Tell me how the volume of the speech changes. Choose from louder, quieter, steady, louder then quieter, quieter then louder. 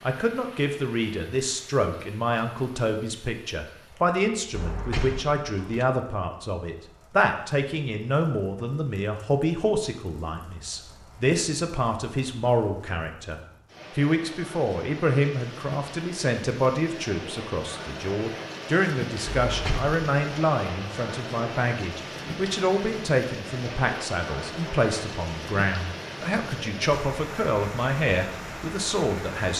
steady.